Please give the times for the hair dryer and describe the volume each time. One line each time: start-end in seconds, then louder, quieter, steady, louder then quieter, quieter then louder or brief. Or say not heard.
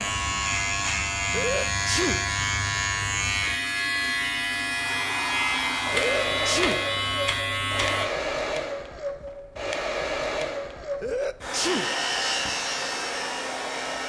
4.7-14.0 steady.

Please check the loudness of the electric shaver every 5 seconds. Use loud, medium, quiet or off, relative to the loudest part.
loud, loud, medium.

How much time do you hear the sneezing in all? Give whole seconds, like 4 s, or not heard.
3 s.